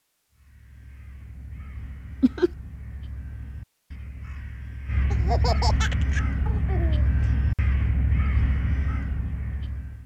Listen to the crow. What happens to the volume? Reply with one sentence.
The loudness of the crow goes up.